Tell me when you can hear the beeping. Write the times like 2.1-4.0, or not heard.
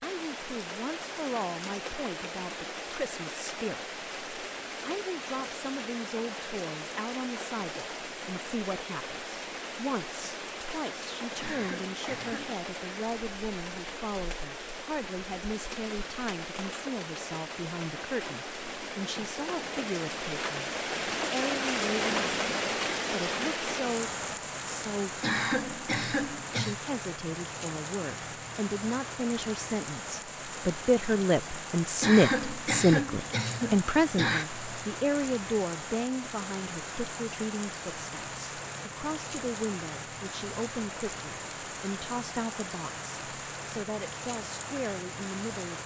not heard.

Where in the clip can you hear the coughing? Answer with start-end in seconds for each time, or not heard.
11.4-12.6, 25.2-26.8, 32.0-34.5.